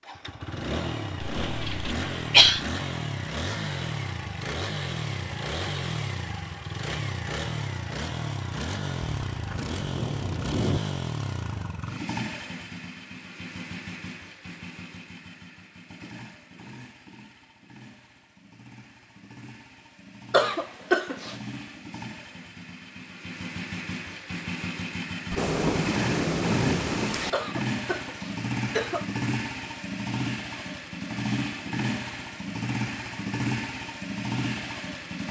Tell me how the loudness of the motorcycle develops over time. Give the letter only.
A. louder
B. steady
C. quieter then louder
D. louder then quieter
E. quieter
C.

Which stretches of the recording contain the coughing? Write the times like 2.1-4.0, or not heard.
1.2-2.6, 20.3-21.4, 27.3-29.1.